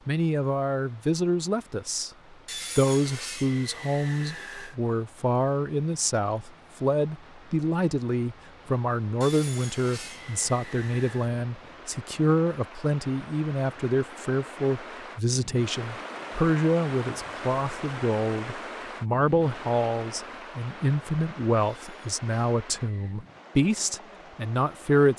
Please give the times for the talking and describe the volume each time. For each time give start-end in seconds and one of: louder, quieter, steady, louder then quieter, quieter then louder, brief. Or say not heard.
0.1-2.1 brief
2.8-25.1 steady.